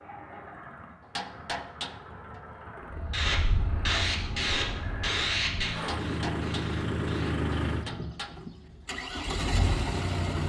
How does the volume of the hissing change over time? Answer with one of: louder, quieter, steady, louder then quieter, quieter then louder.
quieter.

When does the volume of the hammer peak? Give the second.
2 s.